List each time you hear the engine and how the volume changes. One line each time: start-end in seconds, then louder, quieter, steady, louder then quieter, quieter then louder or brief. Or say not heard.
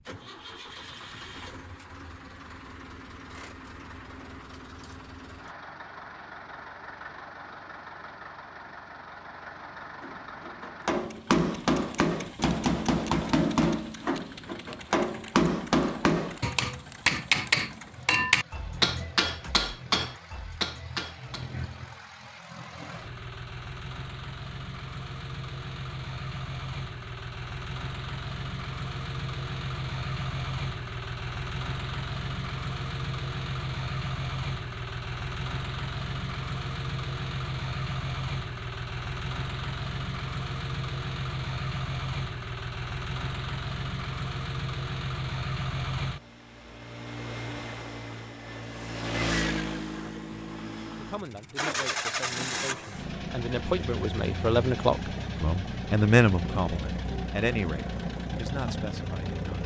0.0-59.6 louder.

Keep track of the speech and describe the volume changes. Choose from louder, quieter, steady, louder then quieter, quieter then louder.
louder then quieter.